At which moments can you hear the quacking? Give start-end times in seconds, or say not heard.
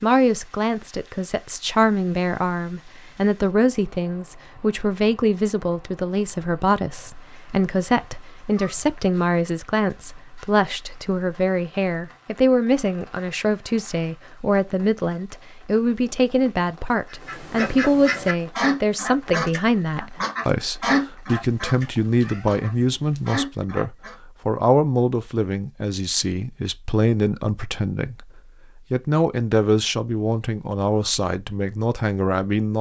17.1-24.1.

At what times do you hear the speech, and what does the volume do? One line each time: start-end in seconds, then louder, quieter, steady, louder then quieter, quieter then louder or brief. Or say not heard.
0.0-32.7 steady.